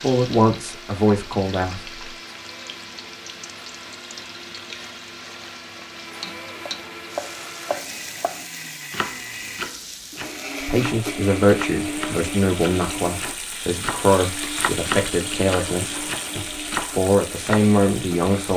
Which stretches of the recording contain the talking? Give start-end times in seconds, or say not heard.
0.0-1.9, 10.6-18.5.